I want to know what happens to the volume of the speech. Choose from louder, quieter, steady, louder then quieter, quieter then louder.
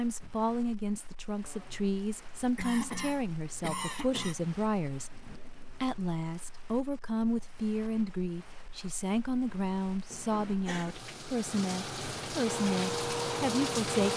steady.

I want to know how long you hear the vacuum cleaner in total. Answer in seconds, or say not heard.
2 s.